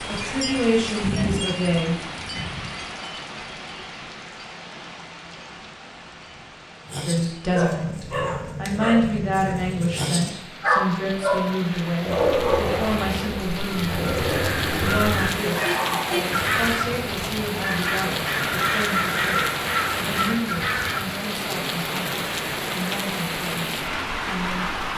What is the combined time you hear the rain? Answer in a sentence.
You can hear the rain for 25 seconds altogether.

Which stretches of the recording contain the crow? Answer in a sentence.
The crow can be heard from 13.6 to 21.1 s.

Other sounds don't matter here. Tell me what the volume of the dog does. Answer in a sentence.
The volume of the dog goes up, then down.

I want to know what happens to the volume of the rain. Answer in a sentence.
The loudness of the rain goes down, then up.